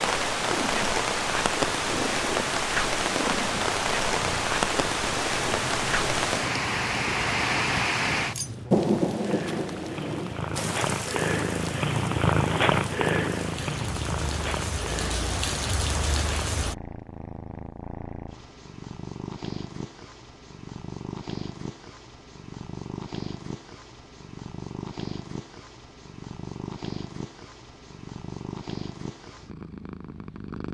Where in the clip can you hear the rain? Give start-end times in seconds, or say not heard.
0.0-16.8.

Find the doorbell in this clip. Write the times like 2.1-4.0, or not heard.
not heard.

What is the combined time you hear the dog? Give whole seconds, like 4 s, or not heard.
not heard.